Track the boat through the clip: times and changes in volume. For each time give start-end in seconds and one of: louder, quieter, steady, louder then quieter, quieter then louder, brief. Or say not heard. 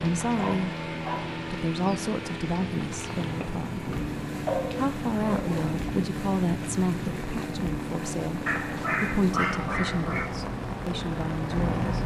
0.0-12.0 steady.